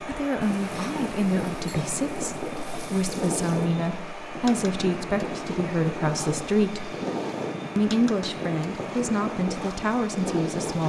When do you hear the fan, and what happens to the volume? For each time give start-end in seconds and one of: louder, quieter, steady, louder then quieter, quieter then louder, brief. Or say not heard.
0.0-10.8 steady.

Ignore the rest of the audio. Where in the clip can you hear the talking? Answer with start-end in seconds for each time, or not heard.
0.0-7.0, 7.8-10.8.